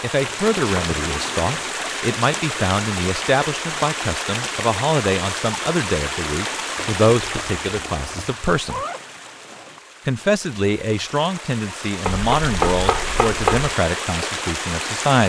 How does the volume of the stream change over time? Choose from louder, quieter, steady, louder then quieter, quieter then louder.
quieter then louder.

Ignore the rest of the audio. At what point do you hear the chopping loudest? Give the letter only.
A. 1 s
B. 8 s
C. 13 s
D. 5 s
C.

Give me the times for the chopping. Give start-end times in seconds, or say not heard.
0.2-1.6, 6.8-8.3, 12.1-13.7.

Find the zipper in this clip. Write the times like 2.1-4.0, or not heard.
8.7-9.8.